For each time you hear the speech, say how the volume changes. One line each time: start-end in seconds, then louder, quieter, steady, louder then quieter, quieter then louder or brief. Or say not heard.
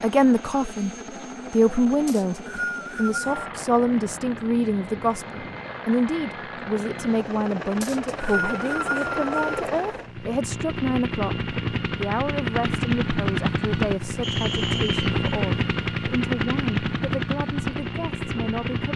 0.0-0.9 brief
1.5-18.9 quieter.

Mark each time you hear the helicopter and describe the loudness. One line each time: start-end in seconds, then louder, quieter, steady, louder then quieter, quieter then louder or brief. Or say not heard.
0.0-18.9 louder.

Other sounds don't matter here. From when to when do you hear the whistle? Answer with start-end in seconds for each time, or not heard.
2.0-3.5, 7.8-9.4, 14.2-15.1.